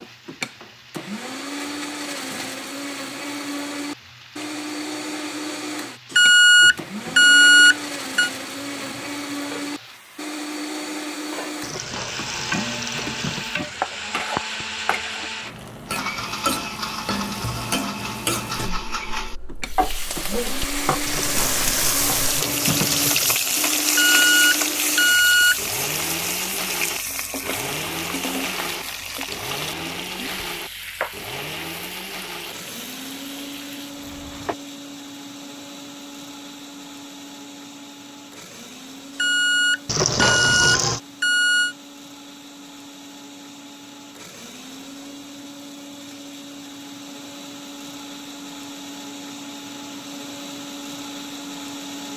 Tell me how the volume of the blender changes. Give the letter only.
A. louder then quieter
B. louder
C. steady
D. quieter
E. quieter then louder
D.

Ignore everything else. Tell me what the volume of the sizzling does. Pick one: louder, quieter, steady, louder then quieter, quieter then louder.
louder then quieter.